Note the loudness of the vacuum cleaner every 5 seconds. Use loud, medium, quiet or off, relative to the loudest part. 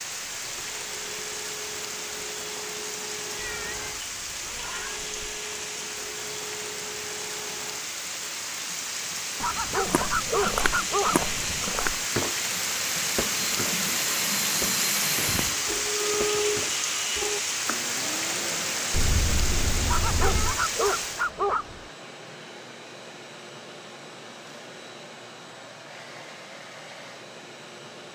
medium, medium, loud, loud, medium, medium.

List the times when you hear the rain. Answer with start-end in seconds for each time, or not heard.
0.0-21.3.